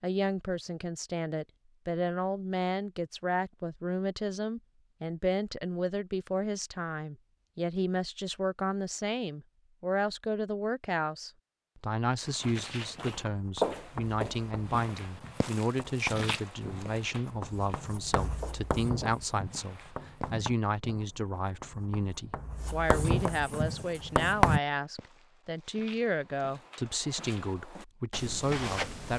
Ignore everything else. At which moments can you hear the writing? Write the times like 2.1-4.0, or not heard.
13.2-24.6.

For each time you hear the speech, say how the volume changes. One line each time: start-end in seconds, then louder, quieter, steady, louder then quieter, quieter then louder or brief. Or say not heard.
0.0-29.1 steady.